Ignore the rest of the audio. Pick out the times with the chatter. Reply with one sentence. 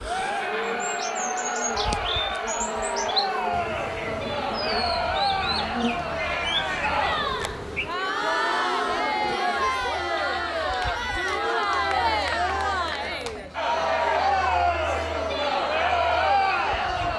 The chatter can be heard from 0.0 to 17.1 s.